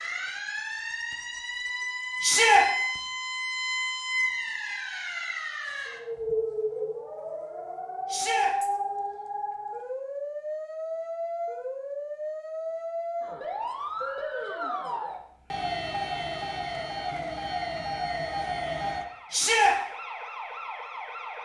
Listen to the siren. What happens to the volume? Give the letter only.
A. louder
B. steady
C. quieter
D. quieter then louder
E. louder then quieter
B.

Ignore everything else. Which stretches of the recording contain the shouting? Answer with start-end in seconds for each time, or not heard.
2.2-2.6, 8.1-8.5, 19.3-19.8.